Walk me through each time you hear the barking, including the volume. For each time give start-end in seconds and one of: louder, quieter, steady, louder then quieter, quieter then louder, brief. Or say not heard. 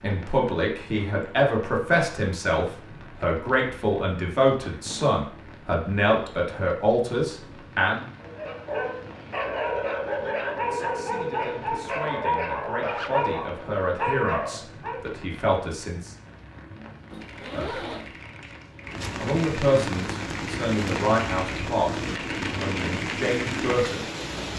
8.2-15.1 steady.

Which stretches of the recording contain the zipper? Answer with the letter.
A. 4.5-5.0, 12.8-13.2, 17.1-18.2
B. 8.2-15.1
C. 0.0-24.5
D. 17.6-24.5
A.